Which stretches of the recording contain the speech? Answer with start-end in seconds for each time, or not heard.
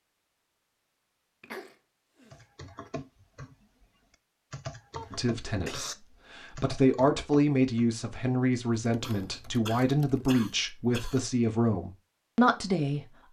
5.1-13.1.